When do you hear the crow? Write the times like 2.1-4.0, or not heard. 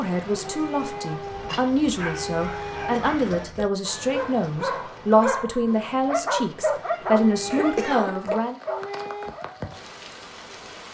not heard.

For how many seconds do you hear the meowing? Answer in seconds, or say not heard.
5 s.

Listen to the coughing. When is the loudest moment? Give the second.
8 s.